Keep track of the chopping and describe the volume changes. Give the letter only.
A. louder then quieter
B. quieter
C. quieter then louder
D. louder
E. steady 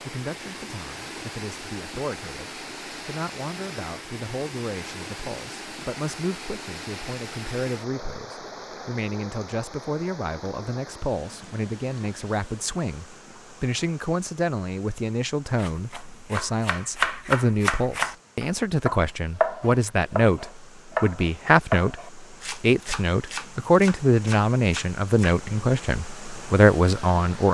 B.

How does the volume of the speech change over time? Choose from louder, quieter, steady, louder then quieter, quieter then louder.
louder.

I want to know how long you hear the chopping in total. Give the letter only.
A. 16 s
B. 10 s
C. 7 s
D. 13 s
B.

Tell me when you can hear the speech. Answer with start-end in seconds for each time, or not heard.
0.0-27.4.